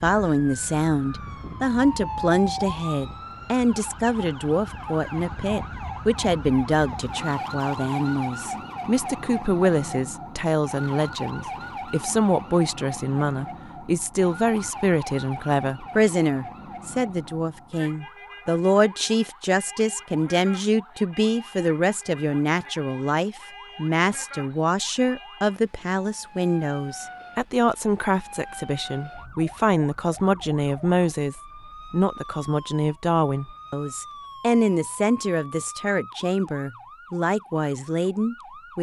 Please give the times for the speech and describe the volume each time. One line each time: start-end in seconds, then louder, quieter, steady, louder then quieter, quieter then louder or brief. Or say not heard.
0.0-38.7 steady.